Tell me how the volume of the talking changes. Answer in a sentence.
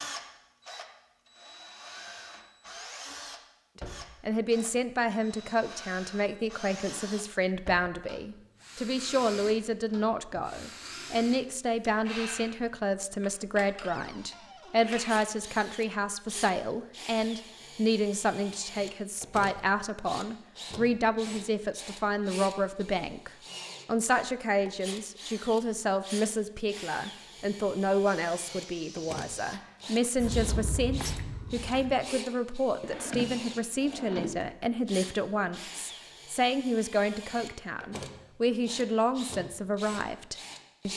The volume of the talking stays about the same.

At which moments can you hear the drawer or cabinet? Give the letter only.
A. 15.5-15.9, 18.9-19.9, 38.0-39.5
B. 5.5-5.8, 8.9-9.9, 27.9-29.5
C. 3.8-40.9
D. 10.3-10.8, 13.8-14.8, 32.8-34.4
D.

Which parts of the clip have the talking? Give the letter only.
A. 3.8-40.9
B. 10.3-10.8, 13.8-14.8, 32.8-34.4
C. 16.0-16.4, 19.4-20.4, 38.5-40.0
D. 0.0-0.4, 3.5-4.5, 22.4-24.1
A.